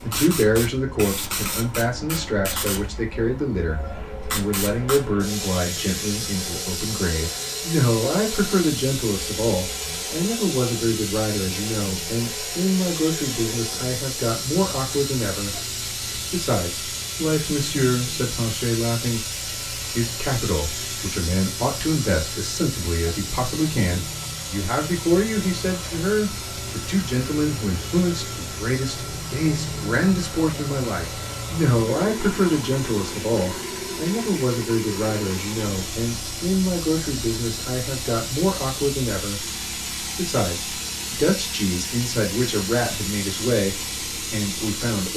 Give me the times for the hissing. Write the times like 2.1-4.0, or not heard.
0.0-45.1.